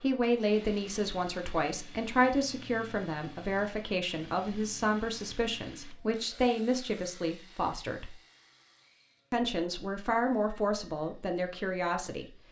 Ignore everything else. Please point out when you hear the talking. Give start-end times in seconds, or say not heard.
0.0-8.2, 9.3-12.3.